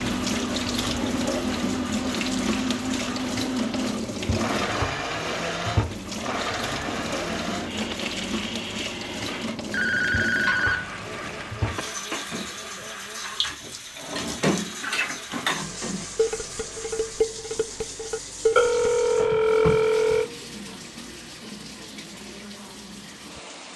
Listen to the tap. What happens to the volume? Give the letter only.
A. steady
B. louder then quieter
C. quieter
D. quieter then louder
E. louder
C.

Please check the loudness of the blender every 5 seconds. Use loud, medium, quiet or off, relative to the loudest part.
loud, loud, medium, quiet, quiet.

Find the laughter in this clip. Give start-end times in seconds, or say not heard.
not heard.